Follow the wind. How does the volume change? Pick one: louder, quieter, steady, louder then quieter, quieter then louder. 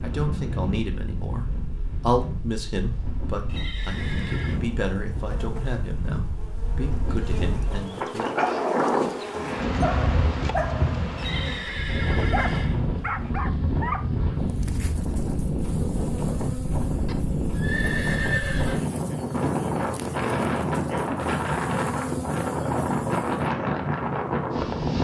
louder.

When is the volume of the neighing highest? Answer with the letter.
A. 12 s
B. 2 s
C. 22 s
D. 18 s
D.